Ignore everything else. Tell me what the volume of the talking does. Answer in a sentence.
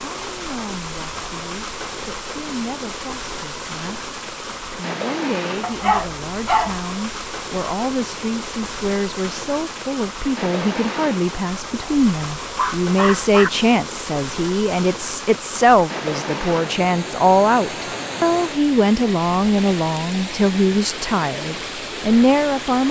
The volume of the talking goes up.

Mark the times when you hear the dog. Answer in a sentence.
You can hear the dog from 5.6 to 6.8 s and from 11.8 to 13.5 s.